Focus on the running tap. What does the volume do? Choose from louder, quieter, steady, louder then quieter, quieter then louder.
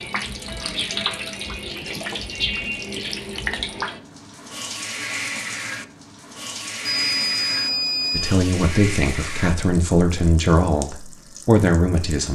quieter.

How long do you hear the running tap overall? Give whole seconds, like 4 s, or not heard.
12 s.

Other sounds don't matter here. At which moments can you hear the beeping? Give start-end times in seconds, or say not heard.
6.8-8.3.